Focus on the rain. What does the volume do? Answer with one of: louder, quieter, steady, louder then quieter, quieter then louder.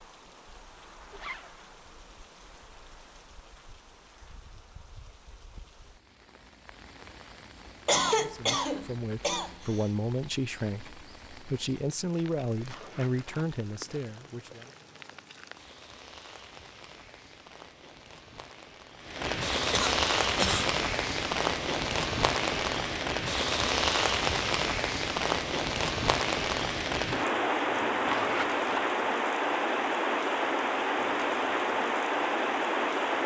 louder.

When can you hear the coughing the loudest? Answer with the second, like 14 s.
8 s.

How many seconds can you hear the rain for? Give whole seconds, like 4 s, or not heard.
33 s.